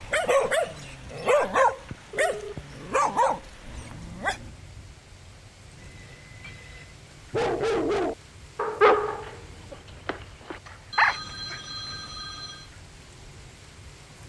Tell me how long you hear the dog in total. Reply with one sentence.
The dog can be heard for 9 seconds in total.